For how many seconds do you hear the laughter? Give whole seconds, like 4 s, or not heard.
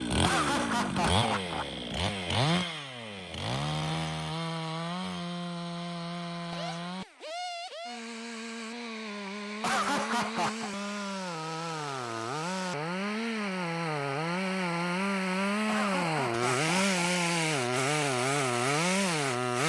4 s.